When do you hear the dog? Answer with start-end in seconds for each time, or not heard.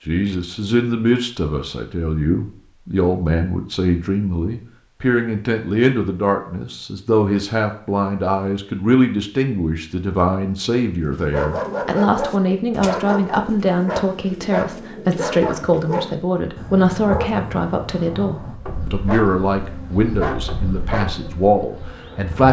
11.3-21.4.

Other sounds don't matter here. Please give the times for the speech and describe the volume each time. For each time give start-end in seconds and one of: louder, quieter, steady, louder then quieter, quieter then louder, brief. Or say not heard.
0.1-22.4 steady.